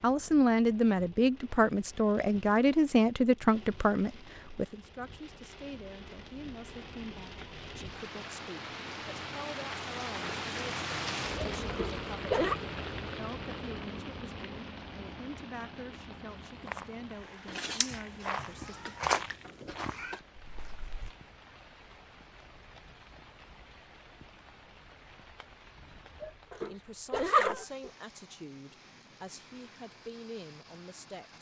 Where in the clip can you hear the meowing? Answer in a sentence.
You can hear the meowing from 17.4 to 20.2 s.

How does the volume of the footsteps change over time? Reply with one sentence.
The loudness of the footsteps goes up, then down.